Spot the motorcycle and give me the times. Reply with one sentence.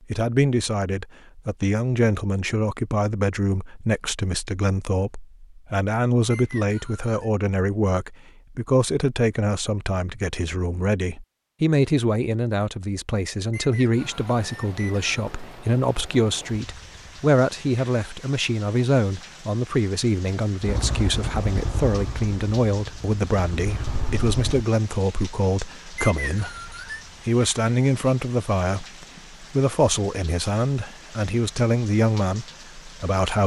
The motorcycle can be heard from 20.6 to 24.6 s.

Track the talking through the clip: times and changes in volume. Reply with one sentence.
The talking can be heard from 0.1 to 33.4 s, at a steady volume.